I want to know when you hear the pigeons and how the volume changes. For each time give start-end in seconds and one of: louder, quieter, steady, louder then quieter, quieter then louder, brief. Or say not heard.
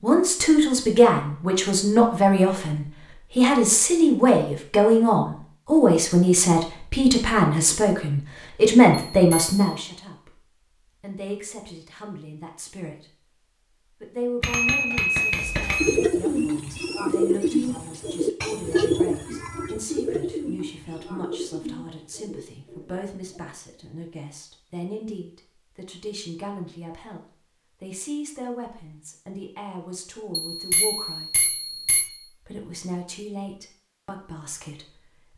15.8-23.6 quieter.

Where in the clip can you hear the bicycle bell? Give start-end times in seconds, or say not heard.
9.1-9.6, 14.4-16.0, 30.4-32.1.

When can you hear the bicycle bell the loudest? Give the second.
15 s.